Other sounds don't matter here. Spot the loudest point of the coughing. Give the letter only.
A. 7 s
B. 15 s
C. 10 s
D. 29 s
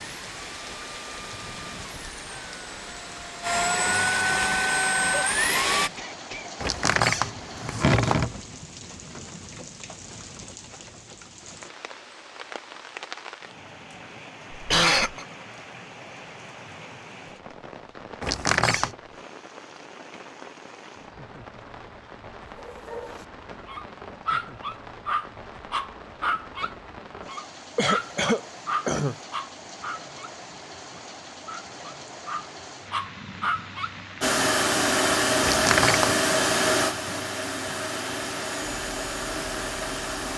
B.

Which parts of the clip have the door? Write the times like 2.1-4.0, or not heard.
6.6-8.4, 18.2-18.9, 35.4-36.1.